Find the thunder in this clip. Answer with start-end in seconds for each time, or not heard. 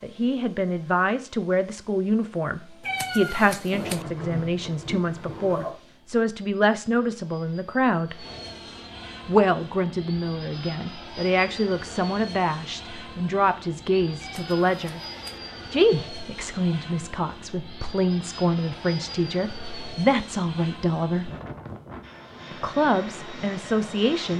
3.7-5.8.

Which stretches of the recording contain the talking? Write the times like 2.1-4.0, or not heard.
0.0-8.2, 9.2-15.0, 15.7-21.3, 22.5-24.3.